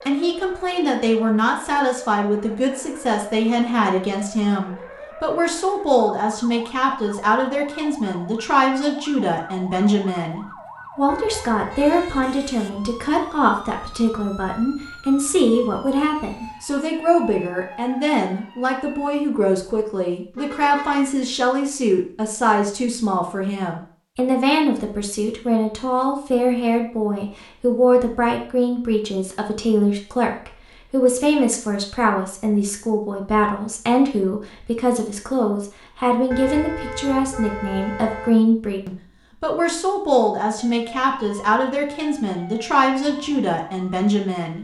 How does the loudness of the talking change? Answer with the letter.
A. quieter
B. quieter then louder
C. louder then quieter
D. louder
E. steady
E.